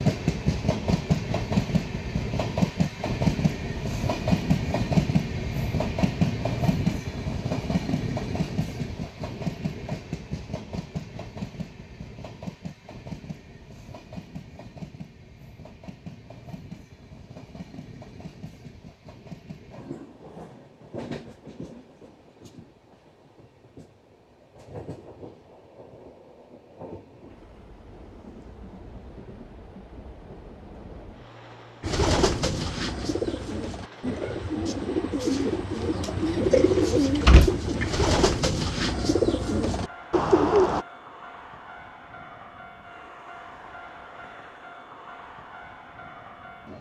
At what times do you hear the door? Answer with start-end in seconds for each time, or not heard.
36.8-37.5.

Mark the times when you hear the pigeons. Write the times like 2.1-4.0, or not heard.
31.8-40.9.